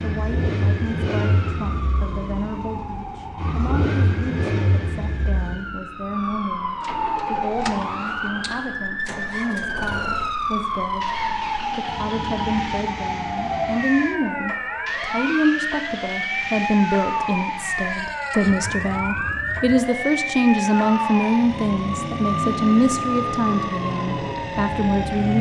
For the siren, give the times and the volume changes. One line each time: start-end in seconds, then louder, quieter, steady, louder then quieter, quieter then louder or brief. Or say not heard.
0.0-25.3 louder.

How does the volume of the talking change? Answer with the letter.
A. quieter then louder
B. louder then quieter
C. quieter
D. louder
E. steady
D.